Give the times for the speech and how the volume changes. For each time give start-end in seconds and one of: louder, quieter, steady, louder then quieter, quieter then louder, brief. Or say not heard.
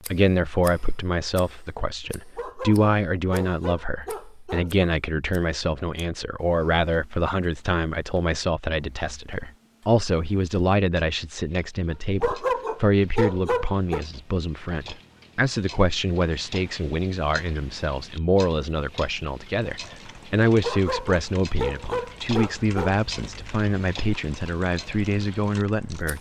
0.1-26.1 steady.